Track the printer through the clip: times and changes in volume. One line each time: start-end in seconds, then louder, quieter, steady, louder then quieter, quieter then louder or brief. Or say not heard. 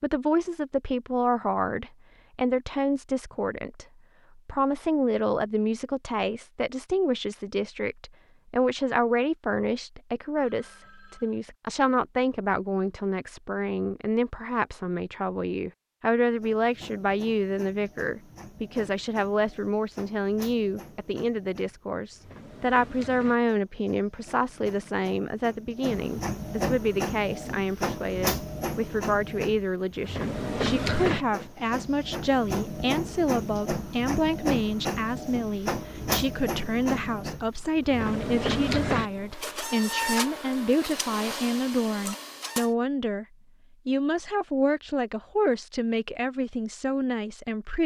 16.3-42.7 louder.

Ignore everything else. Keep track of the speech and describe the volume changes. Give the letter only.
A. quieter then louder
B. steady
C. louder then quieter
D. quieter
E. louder
B.